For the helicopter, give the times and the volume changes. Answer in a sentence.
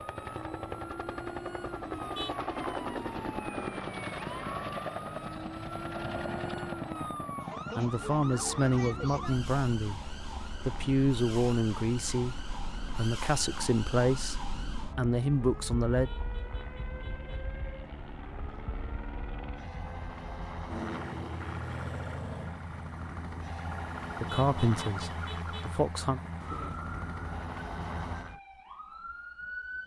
The helicopter can be heard from 0.0 to 28.4 s, getting quieter then louder.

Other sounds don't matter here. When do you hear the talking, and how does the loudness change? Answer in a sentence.
You can hear the talking from 7.8 to 16.1 s, at a steady volume; and briefly from 24.2 to 26.2 s.